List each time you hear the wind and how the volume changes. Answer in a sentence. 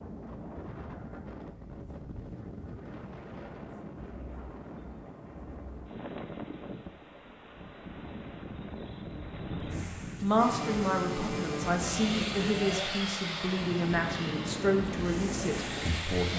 The wind can be heard from 0.0 to 16.3 s, getting louder.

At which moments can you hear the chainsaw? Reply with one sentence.
You can hear the chainsaw from 10.3 to 16.3 s.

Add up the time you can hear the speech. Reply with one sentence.
The speech can be heard for 7 seconds in total.